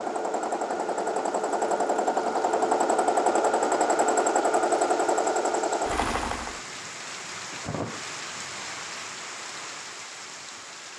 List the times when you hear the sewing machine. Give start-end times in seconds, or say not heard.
0.0-6.6.